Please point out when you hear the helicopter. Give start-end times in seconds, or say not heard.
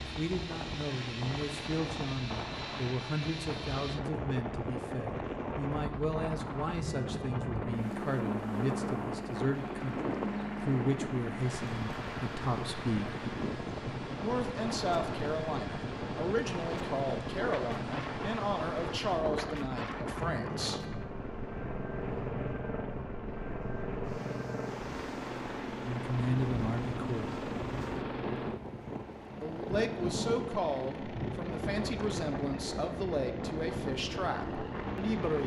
0.0-35.4.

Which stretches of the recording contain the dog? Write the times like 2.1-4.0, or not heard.
not heard.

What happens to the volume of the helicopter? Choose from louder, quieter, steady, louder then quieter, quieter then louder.
steady.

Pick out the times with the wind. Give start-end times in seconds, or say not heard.
0.0-35.4.